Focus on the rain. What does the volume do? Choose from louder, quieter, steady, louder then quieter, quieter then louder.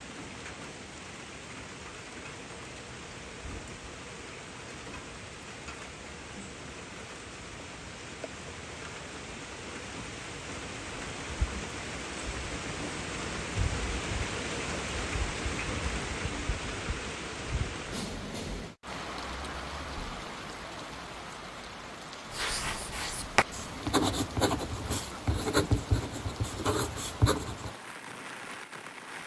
louder then quieter.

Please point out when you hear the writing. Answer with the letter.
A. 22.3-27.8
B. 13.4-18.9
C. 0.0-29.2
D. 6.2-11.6
A.